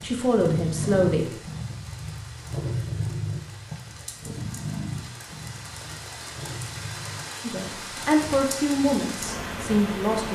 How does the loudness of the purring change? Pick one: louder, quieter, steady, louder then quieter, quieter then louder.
quieter.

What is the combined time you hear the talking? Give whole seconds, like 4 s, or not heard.
4 s.